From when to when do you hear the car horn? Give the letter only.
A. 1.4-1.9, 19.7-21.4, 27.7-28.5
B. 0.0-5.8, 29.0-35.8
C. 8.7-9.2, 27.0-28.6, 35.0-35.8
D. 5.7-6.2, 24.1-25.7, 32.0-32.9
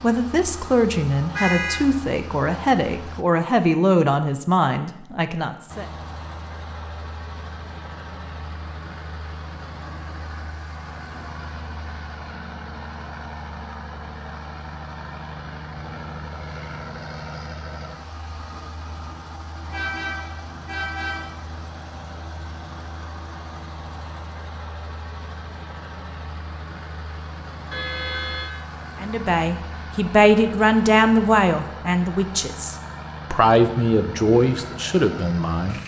A.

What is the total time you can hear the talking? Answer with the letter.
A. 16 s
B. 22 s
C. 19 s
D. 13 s
D.